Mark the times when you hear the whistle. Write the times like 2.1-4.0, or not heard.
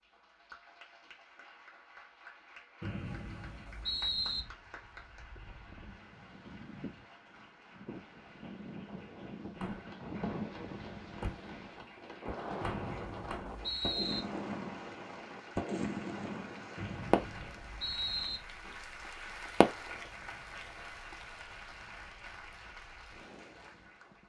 2.8-4.5, 12.6-14.2, 16.8-18.4.